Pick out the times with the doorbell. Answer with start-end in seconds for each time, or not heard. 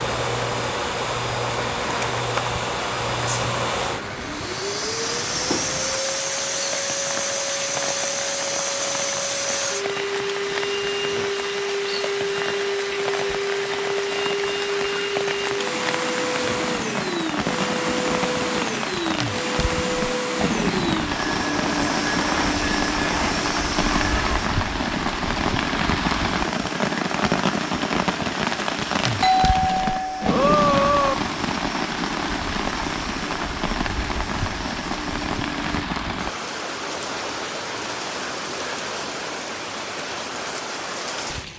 29.2-31.1.